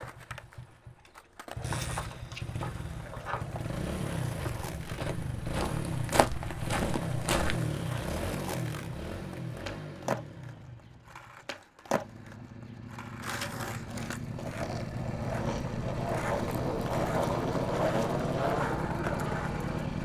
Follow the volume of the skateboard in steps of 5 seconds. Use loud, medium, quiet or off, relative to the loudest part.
quiet, medium, medium, loud.